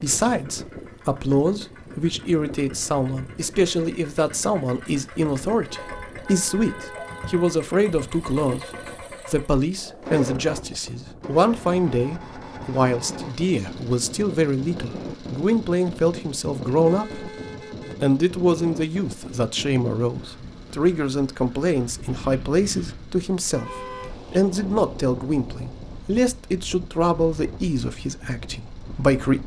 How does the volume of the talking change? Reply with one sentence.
The volume of the talking stays about the same.